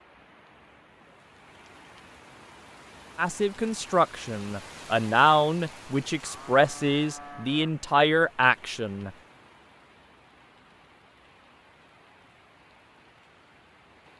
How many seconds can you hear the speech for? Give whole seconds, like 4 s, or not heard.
6 s.